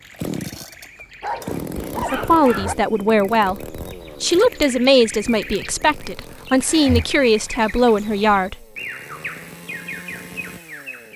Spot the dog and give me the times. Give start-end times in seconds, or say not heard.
1.2-2.8.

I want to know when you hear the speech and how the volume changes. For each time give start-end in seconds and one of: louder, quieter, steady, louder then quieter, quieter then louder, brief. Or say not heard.
1.9-8.6 steady.